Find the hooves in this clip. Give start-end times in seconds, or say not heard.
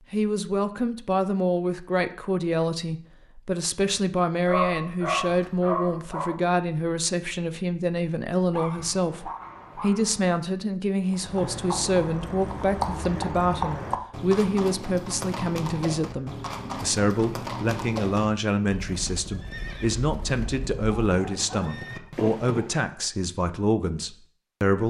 11.0-22.7.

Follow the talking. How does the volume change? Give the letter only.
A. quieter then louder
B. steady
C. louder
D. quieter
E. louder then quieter
B.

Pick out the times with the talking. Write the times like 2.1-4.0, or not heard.
0.1-24.8.